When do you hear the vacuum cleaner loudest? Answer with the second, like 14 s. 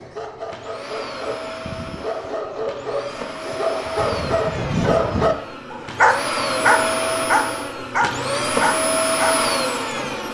9 s.